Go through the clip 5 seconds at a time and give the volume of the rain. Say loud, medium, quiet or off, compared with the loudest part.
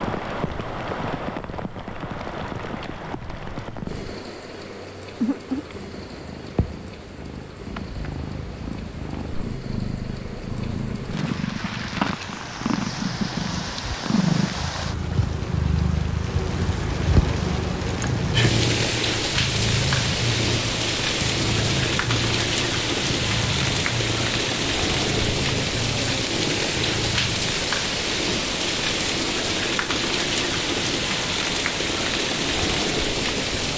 medium, quiet, medium, loud, loud, loud, loud.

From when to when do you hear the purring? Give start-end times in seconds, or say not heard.
0.2-27.6.